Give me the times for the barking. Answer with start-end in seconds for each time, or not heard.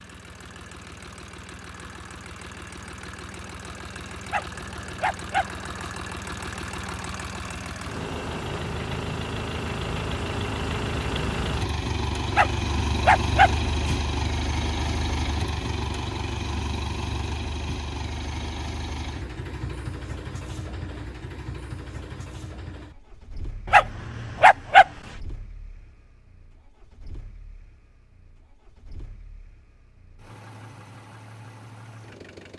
4.2-5.9, 12.3-13.9, 23.6-24.9.